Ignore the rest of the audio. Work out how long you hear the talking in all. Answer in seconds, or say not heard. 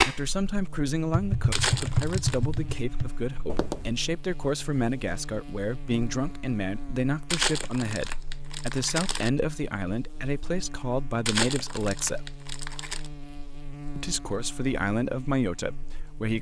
15 s.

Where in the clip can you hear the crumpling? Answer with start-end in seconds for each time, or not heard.
1.5-2.5, 7.3-9.3, 11.2-13.1.